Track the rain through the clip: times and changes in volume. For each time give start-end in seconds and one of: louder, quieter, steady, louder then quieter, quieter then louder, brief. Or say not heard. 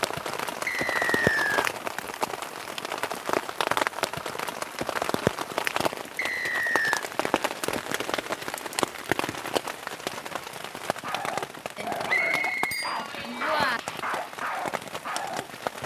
0.0-15.8 quieter.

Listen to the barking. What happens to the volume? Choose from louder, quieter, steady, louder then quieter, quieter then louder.
steady.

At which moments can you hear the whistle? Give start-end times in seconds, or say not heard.
0.7-1.7, 6.2-7.0, 12.1-13.6.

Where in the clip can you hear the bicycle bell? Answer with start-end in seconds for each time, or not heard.
11.8-13.8.